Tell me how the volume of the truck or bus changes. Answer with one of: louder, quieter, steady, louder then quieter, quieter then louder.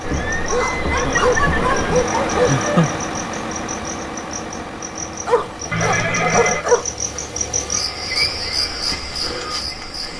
quieter.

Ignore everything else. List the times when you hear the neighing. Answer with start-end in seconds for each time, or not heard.
0.0-2.0, 5.7-6.7.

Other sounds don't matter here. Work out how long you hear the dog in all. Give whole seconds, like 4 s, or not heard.
4 s.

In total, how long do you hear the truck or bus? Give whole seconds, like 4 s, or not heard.
10 s.